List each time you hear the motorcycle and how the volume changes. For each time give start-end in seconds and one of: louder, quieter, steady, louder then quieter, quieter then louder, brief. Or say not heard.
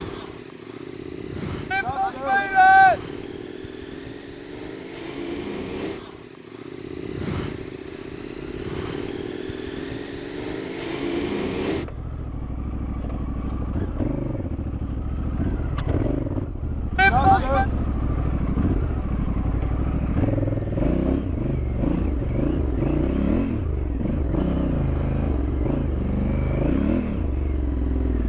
0.0-28.2 louder.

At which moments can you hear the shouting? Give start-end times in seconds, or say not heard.
1.7-3.0, 16.9-17.6.